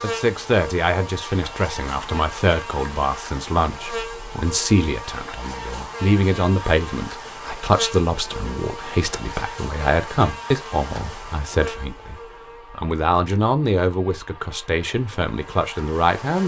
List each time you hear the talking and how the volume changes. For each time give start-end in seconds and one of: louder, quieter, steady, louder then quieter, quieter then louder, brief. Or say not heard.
0.0-16.4 steady.